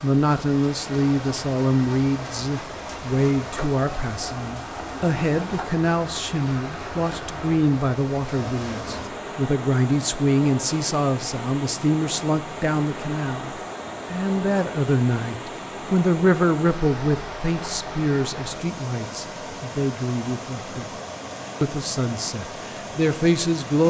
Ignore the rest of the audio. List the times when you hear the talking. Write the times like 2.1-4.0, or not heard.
0.0-13.5, 14.1-20.9, 21.6-23.8.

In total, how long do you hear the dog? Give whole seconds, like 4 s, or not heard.
not heard.